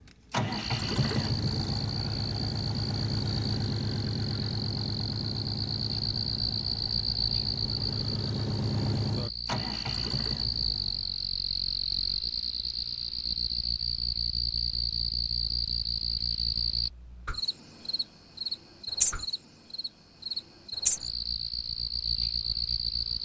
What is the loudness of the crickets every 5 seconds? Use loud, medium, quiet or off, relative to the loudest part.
medium, loud, loud, loud, loud.